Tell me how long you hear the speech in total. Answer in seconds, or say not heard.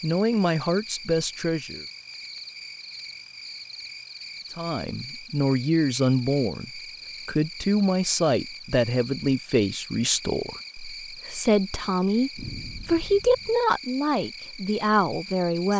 13 s.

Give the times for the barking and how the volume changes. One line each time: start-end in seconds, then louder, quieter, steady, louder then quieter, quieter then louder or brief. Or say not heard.
not heard.